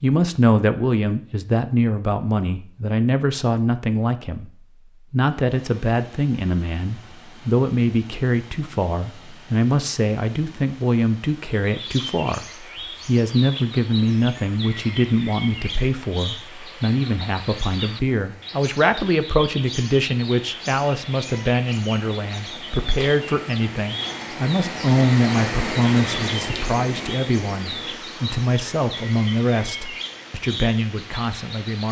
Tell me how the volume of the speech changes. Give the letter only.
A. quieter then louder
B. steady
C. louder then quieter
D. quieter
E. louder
B.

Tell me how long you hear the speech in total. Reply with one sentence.
You can hear the speech for 31 seconds altogether.